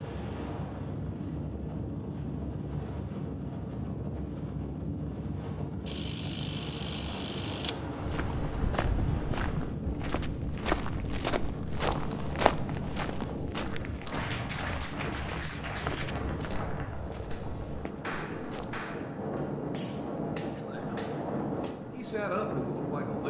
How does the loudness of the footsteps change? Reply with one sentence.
The volume of the footsteps goes down.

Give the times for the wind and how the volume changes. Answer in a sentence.
You can hear the wind from 0.0 to 23.2 s, at a steady volume.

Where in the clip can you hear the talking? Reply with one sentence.
The talking can be heard from 20.6 to 23.2 s.